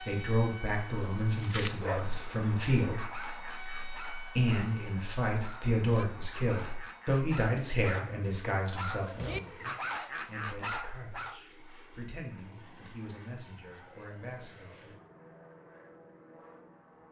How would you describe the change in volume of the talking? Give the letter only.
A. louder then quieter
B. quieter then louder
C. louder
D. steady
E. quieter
E.